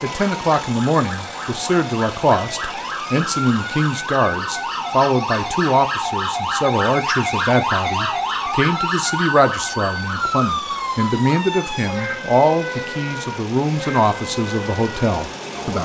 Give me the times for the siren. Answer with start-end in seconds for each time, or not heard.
0.0-15.7.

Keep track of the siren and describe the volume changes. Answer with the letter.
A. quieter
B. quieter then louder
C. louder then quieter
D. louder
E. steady
C.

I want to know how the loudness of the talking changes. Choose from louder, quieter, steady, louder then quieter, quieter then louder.
steady.